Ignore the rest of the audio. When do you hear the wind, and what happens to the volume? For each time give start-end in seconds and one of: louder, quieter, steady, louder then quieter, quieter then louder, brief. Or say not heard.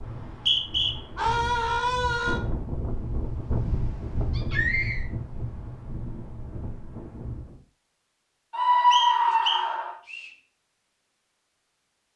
0.0-7.6 louder then quieter.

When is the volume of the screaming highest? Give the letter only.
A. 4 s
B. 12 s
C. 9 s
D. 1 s
C.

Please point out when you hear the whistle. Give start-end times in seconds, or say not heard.
0.1-0.9, 8.9-10.3.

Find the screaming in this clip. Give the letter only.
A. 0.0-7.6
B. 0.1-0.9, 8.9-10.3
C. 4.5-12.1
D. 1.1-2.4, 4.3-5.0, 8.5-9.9
D.